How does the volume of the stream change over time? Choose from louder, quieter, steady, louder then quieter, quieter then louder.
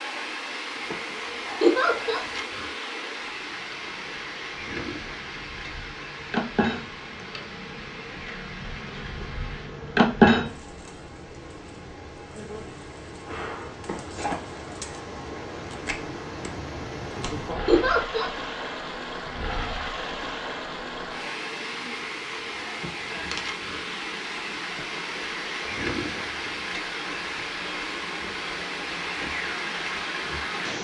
quieter then louder.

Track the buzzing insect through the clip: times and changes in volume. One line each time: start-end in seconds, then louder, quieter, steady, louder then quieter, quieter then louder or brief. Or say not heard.
0.0-30.7 louder then quieter.